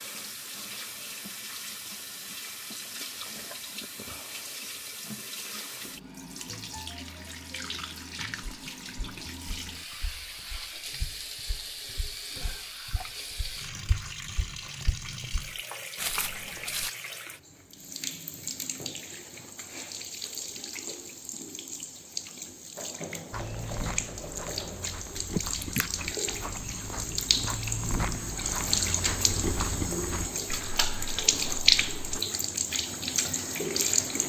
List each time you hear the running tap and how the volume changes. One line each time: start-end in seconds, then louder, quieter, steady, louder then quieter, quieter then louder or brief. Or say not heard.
0.0-34.2 louder.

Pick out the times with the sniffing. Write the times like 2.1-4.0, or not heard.
25.3-25.9.